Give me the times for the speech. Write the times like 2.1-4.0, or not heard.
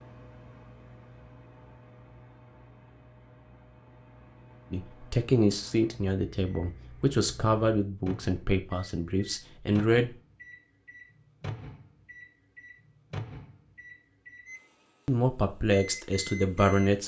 4.7-10.1, 15.1-17.0.